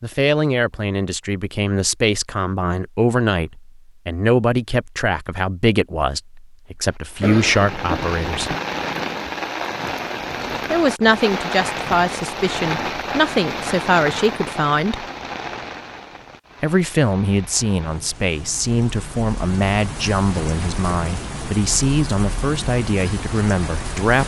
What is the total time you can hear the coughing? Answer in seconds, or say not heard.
2 s.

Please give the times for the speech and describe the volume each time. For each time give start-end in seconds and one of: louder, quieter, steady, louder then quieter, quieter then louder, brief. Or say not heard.
0.0-8.6 steady
10.7-15.1 steady
16.6-24.2 steady.